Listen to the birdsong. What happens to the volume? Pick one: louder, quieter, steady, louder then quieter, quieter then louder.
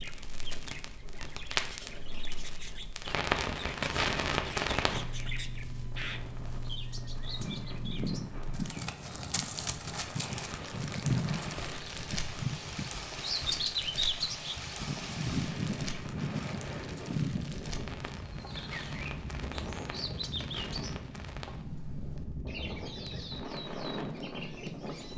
louder then quieter.